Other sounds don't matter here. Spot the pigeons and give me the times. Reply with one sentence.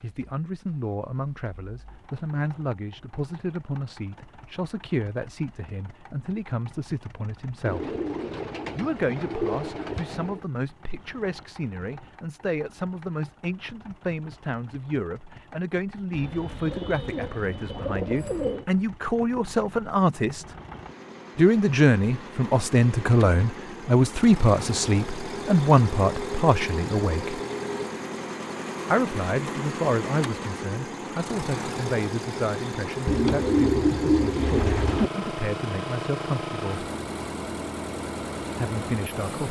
You can hear the pigeons from 7.7 to 10.4 s, from 16.1 to 18.6 s and from 33.0 to 35.1 s.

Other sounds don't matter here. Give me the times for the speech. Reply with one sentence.
The speech can be heard from 0.0 to 8.0 s, from 8.8 to 20.4 s, from 21.4 to 27.4 s, from 28.9 to 36.9 s and from 38.5 to 39.4 s.